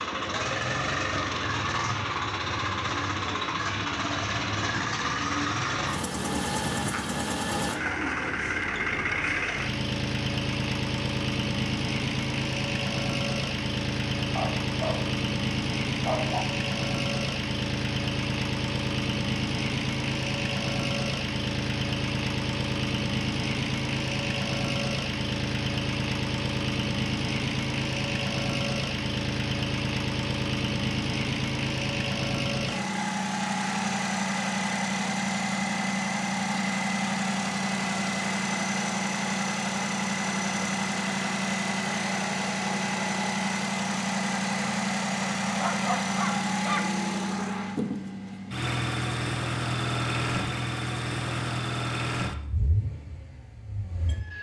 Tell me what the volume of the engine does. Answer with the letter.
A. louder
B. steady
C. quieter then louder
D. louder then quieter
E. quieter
B.